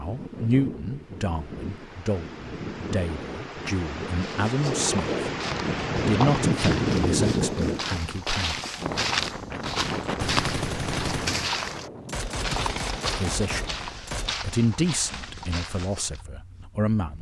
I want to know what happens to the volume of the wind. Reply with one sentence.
The loudness of the wind goes up, then down.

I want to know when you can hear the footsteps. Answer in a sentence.
The footsteps can be heard from 4.2 to 16.2 s.